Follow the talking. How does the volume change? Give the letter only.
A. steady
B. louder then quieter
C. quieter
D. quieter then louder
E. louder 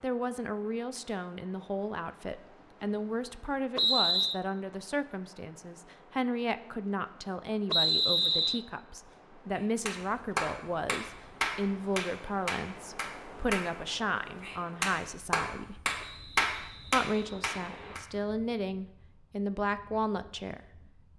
A.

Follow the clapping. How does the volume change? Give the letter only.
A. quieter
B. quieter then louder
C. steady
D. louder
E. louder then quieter
B.